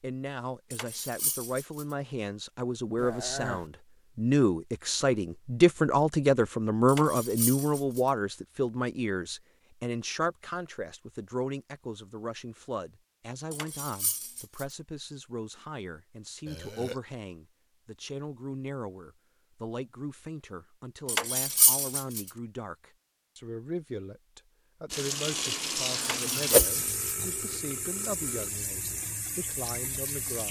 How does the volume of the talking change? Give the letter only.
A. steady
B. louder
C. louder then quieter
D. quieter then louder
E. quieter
E.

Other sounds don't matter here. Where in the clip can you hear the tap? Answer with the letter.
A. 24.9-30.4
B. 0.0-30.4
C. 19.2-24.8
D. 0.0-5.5
A.